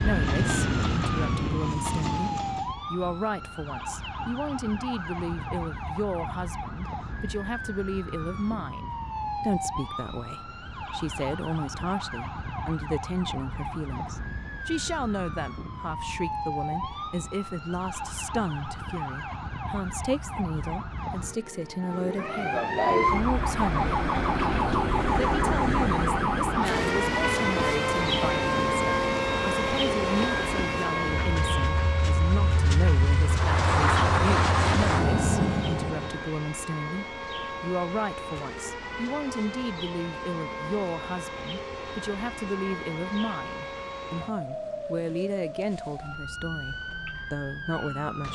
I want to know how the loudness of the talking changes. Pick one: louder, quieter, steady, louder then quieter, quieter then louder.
steady.